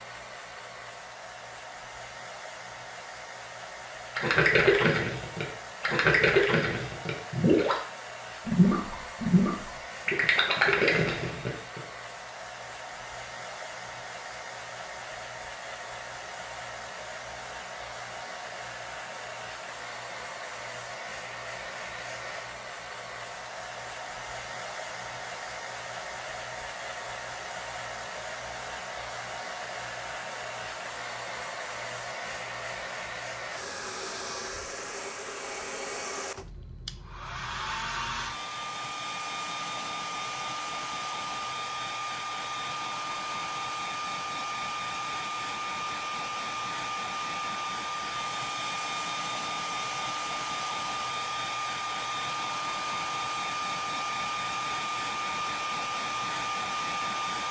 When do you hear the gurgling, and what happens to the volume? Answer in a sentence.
You can hear the gurgling from 4.2 to 11.8 s, at a steady volume.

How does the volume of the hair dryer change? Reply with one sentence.
The volume of the hair dryer goes up.